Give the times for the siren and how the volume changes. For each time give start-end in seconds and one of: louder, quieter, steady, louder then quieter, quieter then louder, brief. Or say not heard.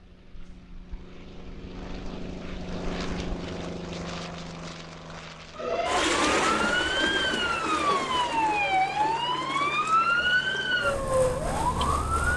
5.5-12.3 steady.